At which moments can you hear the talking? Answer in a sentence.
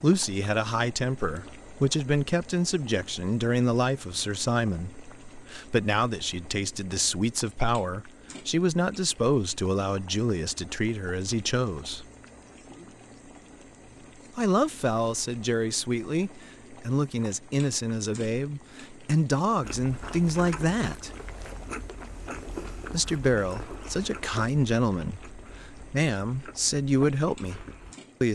The talking can be heard from 0.0 to 12.1 s, from 14.3 to 21.1 s and from 22.9 to 28.3 s.